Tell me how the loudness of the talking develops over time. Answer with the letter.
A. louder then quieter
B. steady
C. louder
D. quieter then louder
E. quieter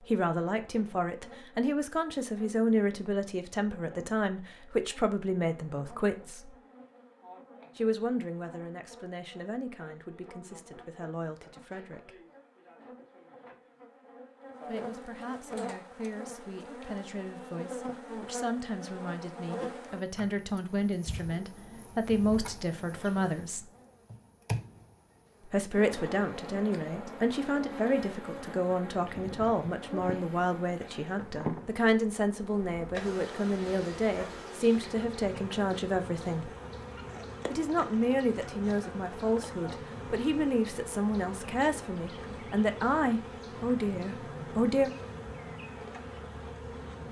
D.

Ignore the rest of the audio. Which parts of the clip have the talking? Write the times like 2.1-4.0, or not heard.
0.0-6.5, 7.8-12.2, 14.7-23.7, 25.4-36.5, 37.5-44.9.